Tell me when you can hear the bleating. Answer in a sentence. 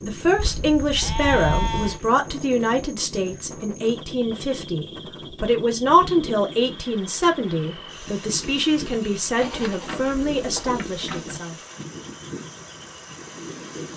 The bleating can be heard from 0.6 to 2.0 s and from 9.3 to 11.4 s.